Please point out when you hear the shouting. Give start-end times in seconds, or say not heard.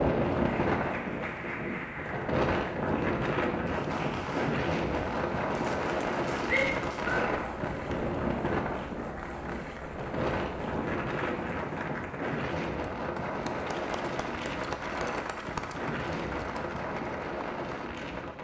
6.5-7.2.